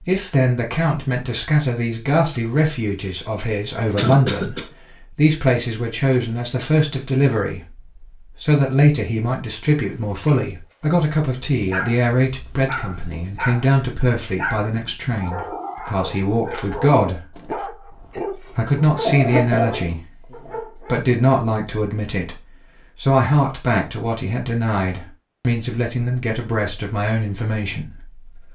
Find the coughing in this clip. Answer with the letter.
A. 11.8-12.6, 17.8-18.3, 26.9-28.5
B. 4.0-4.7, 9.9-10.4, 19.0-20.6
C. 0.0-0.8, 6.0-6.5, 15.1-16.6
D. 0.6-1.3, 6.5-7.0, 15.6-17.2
B.